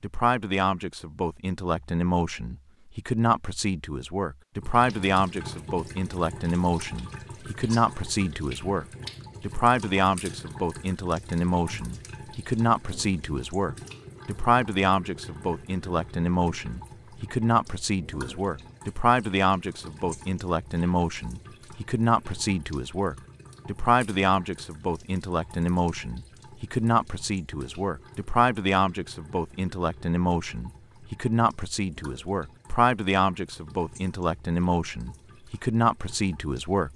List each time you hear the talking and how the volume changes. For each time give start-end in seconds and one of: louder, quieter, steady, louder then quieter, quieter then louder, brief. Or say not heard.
0.0-36.9 steady.